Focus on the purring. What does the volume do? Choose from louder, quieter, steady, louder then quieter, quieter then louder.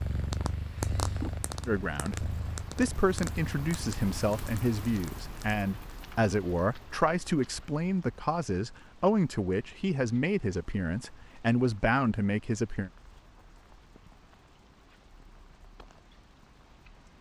quieter.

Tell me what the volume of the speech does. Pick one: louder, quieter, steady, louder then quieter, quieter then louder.
steady.